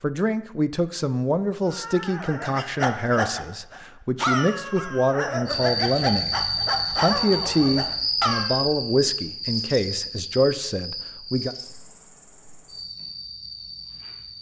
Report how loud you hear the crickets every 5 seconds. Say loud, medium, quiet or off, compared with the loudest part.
off, loud, medium.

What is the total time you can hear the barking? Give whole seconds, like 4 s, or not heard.
7 s.